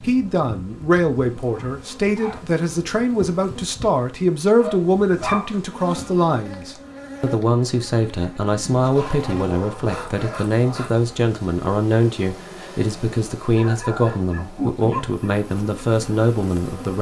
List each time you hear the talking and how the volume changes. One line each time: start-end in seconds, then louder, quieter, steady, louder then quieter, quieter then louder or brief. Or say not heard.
0.0-16.9 steady.